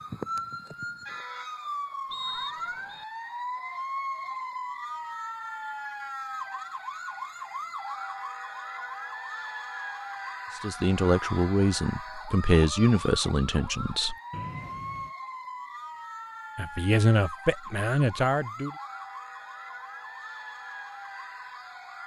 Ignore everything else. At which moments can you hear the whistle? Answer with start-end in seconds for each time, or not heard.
2.1-3.0, 14.3-15.1.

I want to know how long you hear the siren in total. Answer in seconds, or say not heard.
22 s.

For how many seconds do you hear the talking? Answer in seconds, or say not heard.
6 s.